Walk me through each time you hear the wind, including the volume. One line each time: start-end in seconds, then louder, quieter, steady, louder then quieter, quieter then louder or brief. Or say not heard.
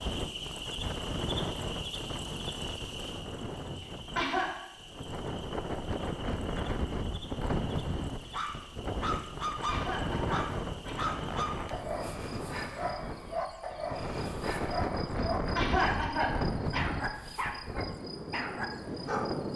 0.0-19.5 steady.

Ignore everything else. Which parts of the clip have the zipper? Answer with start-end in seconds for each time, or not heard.
11.2-11.8.